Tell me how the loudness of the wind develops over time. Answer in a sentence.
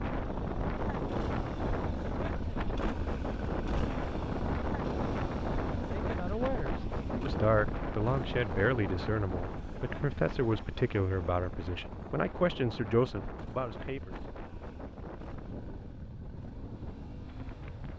The volume of the wind goes down.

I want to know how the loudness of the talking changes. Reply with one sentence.
The loudness of the talking stays about the same.